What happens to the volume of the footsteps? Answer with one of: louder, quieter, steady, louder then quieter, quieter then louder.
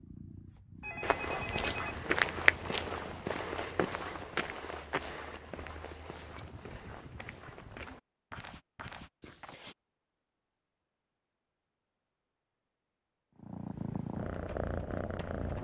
quieter.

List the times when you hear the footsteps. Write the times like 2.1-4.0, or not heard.
1.0-9.8.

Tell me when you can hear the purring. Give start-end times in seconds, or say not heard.
0.0-3.6, 13.3-15.6.